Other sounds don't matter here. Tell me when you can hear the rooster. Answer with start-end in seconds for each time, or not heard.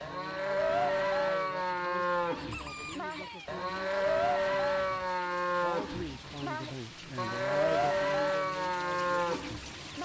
2.2-3.5.